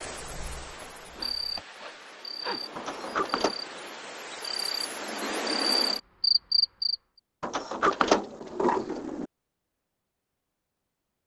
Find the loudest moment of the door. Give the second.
8 s.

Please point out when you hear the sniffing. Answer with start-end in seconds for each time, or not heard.
1.1-2.6.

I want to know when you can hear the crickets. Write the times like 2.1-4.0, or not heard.
0.0-7.0.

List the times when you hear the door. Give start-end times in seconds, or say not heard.
2.8-3.5, 7.4-9.2.